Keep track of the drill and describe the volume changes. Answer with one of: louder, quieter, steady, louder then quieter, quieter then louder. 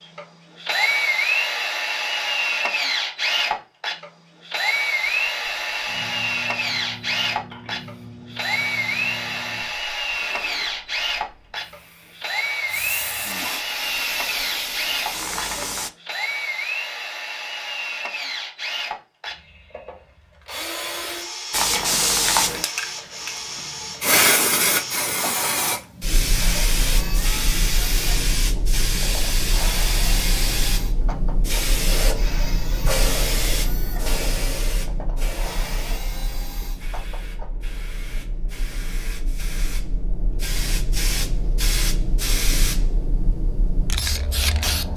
quieter.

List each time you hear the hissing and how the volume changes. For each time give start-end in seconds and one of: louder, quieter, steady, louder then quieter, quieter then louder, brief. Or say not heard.
5.0-15.9 louder
21.5-44.9 quieter then louder.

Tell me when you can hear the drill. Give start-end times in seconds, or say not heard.
0.0-37.6.